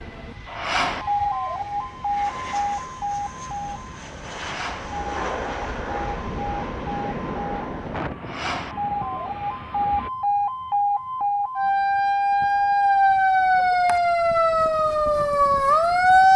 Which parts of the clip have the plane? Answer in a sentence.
The plane can be heard from 0.0 to 10.1 s.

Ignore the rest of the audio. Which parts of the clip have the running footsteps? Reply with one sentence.
The running footsteps can't be heard in this clip.